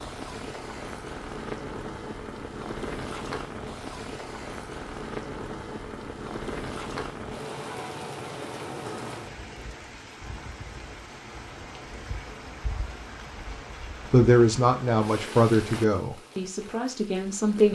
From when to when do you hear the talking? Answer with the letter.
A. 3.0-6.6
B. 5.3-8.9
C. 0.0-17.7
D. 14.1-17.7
D.